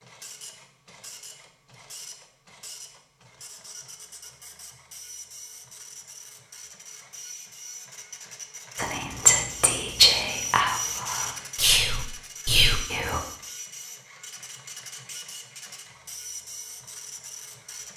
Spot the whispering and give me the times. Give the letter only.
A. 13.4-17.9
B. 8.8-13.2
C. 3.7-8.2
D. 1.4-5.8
B.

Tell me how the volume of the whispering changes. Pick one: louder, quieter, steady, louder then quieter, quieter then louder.
quieter then louder.